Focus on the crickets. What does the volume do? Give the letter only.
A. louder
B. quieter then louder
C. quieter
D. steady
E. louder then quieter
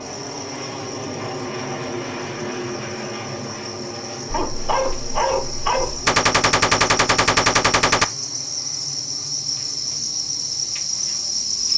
A.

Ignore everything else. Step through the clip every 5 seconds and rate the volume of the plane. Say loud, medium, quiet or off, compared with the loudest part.
loud, medium, quiet.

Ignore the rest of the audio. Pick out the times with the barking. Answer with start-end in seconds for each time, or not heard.
4.2-6.1.